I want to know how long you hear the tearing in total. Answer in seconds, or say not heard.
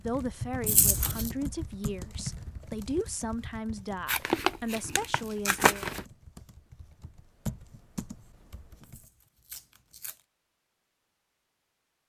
4 s.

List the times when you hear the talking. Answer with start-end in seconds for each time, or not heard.
0.0-5.8.